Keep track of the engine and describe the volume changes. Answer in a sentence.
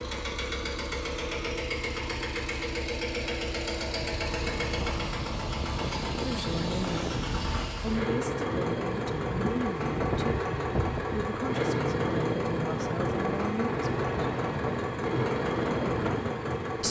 The volume of the engine stays about the same.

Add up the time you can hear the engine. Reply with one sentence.
The engine can be heard for 17 seconds in total.